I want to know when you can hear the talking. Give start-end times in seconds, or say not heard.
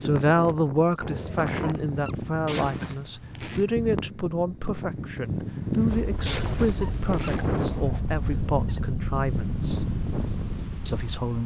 0.0-9.8, 10.8-11.4.